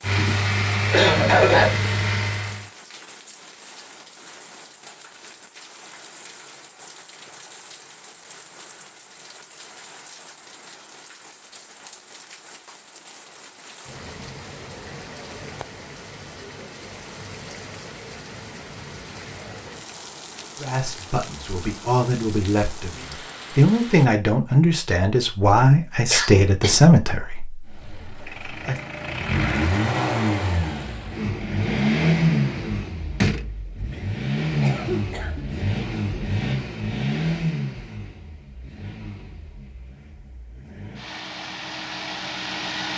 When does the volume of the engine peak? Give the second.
32 s.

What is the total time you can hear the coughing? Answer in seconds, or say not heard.
4 s.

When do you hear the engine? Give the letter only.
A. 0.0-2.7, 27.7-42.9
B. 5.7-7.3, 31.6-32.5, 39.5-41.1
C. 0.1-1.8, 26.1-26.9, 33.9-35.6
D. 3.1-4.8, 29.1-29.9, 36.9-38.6
A.